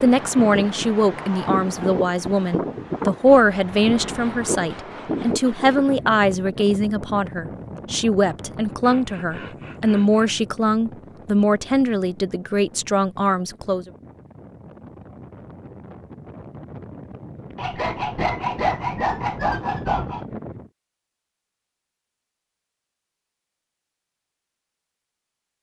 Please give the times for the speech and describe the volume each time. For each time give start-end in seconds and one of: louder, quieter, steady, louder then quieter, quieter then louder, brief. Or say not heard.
0.0-13.9 steady.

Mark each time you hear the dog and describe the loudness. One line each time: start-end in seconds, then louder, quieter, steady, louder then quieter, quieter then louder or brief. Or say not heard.
not heard.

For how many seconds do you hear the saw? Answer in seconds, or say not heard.
7 s.